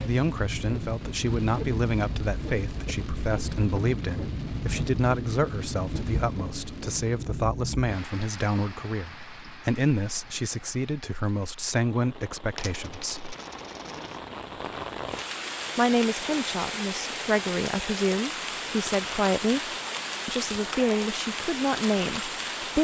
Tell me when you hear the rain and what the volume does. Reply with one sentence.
You can hear the rain from 0.0 to 22.7 s, getting quieter then louder.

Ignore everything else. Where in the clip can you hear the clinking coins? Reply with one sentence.
You can hear the clinking coins from 12.6 to 14.2 s.